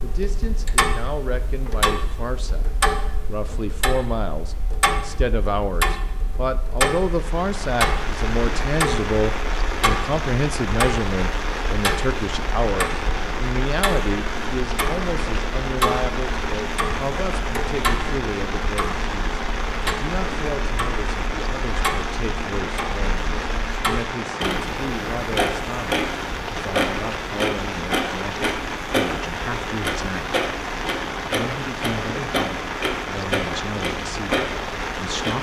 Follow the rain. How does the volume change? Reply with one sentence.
The loudness of the rain stays about the same.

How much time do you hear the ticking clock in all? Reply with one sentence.
The ticking clock can be heard for 35 seconds in total.